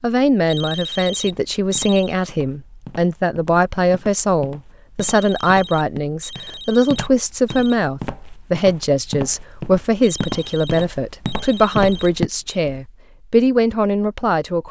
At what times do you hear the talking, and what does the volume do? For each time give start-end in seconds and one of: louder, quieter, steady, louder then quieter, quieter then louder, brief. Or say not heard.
0.0-14.6 steady.